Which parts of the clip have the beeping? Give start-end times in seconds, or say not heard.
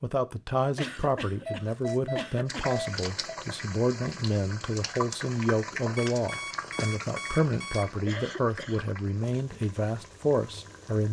0.8-3.4, 6.0-8.0.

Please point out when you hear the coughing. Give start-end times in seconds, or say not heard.
0.8-2.8, 8.1-8.8.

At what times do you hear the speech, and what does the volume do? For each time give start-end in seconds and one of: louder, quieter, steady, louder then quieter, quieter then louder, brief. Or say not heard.
0.0-11.0 steady.